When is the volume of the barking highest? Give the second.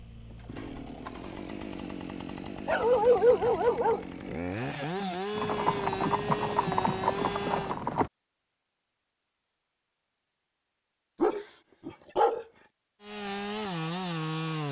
3 s.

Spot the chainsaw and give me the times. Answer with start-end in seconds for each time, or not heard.
0.0-7.8, 13.0-14.6.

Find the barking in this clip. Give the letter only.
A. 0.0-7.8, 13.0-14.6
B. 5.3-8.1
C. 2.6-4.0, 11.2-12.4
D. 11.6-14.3
C.